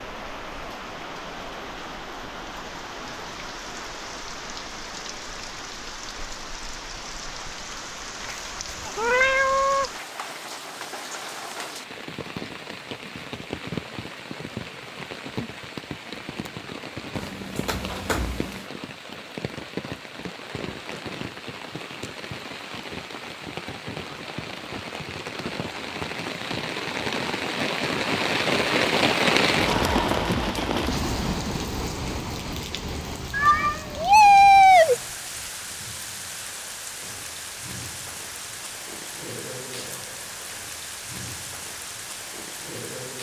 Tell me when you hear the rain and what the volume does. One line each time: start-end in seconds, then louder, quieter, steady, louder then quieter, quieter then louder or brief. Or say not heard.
0.0-43.1 louder then quieter.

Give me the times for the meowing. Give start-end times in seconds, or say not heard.
8.2-9.9, 17.1-18.6, 33.3-35.0.